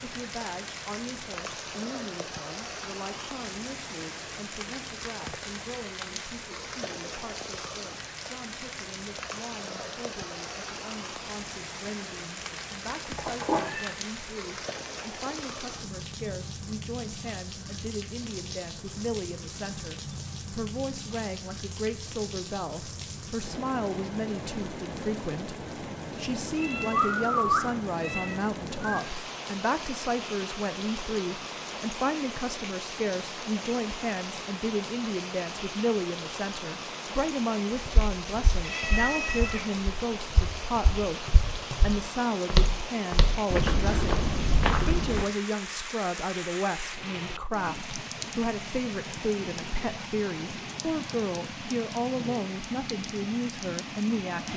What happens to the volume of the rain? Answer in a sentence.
The loudness of the rain stays about the same.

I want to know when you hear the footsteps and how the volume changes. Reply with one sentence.
You can hear the footsteps from 37.9 to 45.2 s, getting louder.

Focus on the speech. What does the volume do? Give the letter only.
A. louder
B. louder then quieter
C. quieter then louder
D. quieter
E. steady
A.